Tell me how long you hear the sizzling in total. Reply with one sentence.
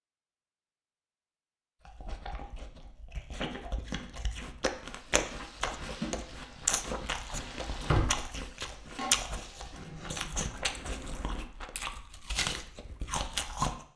You can hear the sizzling for 6 seconds altogether.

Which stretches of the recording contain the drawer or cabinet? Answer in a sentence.
You can hear the drawer or cabinet from 7.5 to 8.3 s.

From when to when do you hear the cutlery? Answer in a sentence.
The cutlery can't be heard in this clip.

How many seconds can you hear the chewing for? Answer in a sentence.
The chewing can be heard for 12 seconds in total.